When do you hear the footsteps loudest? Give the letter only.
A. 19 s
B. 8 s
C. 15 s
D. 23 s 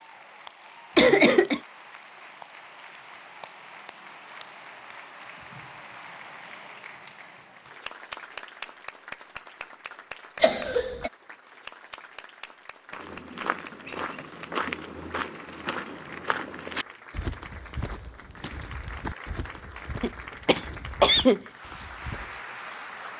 C.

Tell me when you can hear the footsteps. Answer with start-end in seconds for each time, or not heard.
12.9-22.4.